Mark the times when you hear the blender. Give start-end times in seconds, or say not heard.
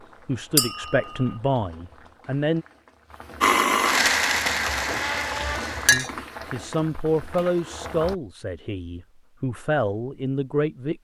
3.4-6.0.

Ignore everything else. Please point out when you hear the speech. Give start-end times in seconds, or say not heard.
0.2-2.6, 5.9-11.0.